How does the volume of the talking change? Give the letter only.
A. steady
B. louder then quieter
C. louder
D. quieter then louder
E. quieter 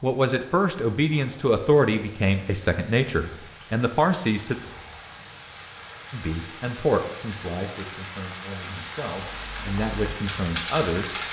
D.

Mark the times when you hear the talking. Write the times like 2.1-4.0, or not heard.
0.0-4.5, 6.1-11.2.